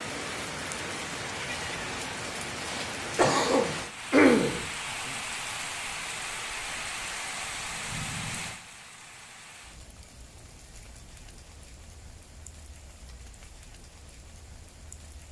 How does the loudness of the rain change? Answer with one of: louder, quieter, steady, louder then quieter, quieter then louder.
quieter.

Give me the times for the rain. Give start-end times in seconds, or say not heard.
0.0-15.2.